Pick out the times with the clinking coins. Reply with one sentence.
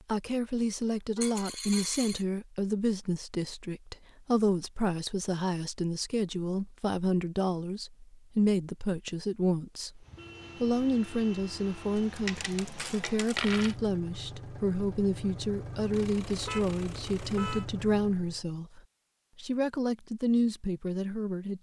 You can hear the clinking coins from 1.2 to 2.2 s and from 11.9 to 13.8 s.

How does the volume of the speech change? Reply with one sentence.
The loudness of the speech stays about the same.